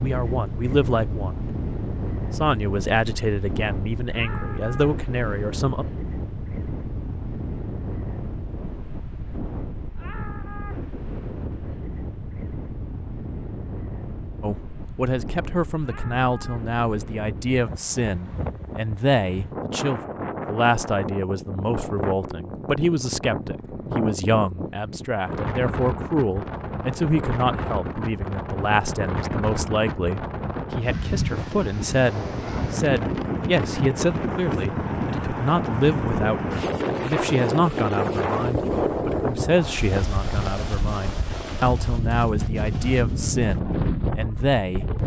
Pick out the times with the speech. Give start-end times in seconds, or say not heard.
0.0-1.4, 2.3-5.8, 14.4-45.0.